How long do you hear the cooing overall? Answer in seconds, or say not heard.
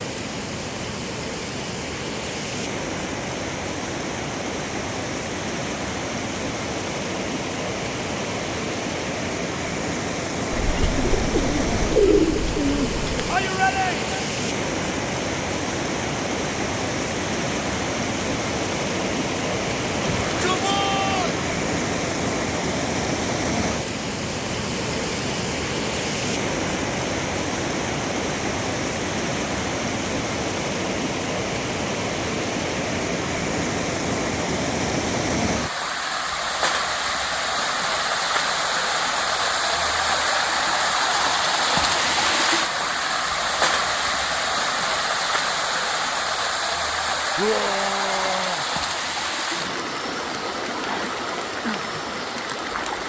3 s.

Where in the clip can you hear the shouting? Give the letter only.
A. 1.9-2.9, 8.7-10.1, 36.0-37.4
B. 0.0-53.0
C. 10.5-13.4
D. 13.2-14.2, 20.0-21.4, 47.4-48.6
D.